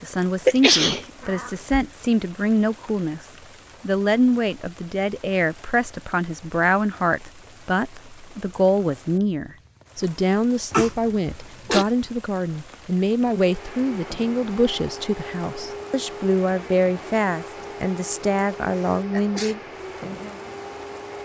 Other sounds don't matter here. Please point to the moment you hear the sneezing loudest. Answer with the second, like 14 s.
1 s.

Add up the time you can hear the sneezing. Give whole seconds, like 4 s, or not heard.
2 s.